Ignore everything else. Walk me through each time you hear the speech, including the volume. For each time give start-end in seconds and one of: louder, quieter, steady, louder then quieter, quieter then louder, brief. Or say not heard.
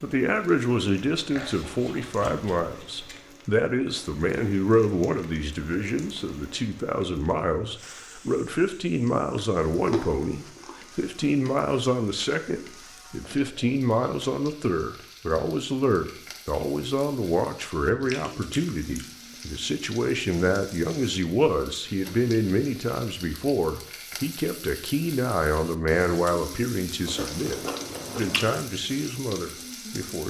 0.0-30.2 steady.